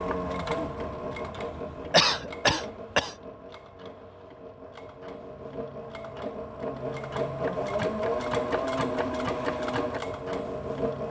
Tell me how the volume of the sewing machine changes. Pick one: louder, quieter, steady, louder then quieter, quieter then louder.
quieter then louder.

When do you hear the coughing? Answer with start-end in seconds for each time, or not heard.
1.9-3.1.